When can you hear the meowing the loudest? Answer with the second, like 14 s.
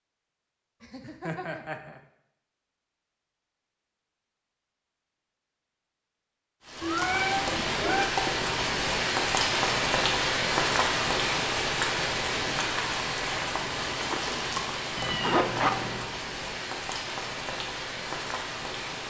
7 s.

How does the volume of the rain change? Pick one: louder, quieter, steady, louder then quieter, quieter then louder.
quieter.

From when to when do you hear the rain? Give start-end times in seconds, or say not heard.
6.6-19.0.